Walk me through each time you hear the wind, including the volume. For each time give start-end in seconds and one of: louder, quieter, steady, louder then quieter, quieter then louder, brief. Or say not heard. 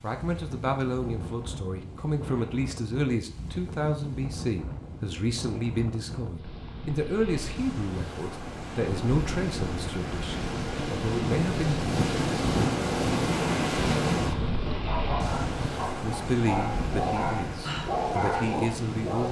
0.0-19.2 louder then quieter.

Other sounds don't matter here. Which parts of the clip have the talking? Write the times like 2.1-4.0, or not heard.
0.0-11.8, 16.0-19.2.